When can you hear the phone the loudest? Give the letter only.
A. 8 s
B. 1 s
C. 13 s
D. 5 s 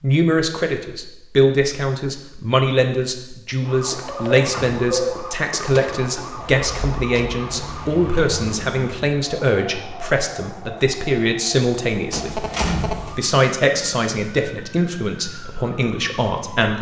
D.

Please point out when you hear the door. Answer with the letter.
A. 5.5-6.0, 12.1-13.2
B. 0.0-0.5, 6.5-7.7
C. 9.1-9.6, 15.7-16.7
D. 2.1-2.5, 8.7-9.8
A.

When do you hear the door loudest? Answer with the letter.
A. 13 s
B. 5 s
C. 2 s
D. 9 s
A.